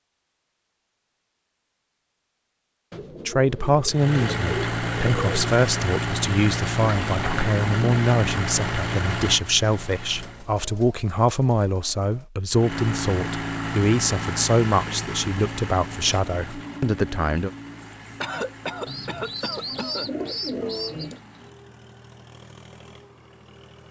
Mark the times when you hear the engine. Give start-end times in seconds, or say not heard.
3.9-10.5, 12.5-23.8.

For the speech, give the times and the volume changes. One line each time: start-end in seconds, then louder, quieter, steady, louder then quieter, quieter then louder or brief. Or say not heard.
3.2-17.5 steady.